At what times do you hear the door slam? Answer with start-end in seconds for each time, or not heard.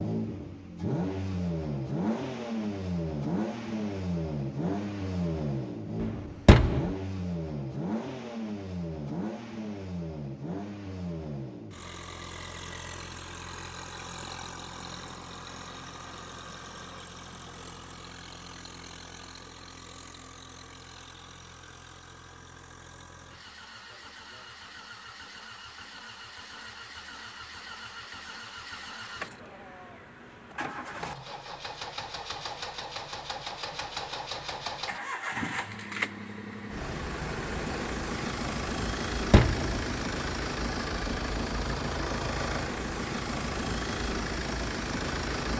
6.0-7.0, 38.9-40.0.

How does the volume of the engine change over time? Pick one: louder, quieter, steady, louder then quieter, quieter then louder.
quieter then louder.